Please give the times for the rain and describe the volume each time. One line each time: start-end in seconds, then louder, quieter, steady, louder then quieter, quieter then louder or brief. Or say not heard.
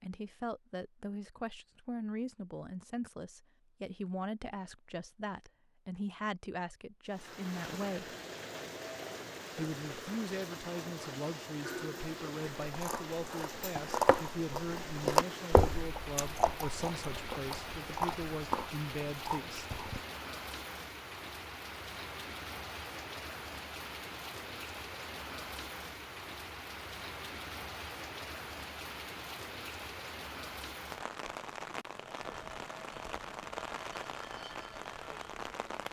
7.0-35.8 steady.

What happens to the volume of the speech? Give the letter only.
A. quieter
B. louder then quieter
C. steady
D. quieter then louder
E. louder
C.